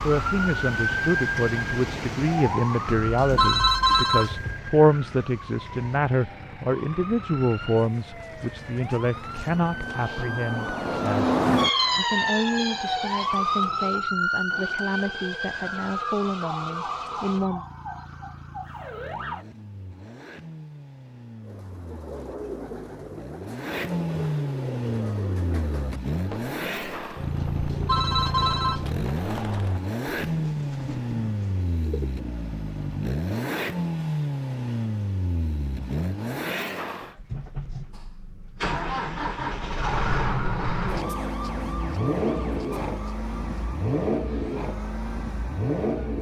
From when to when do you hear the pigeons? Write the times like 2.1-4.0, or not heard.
21.4-32.2.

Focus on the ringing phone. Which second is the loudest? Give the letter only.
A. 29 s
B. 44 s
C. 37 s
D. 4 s
D.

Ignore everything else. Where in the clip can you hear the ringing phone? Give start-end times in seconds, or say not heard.
3.0-4.6, 27.5-29.0.